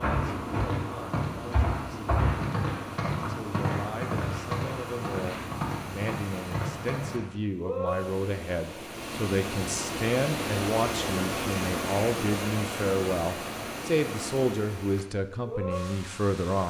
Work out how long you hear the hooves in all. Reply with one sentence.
You can hear the hooves for 7 seconds altogether.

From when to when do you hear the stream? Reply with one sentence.
You can hear the stream from 0.0 to 16.6 s.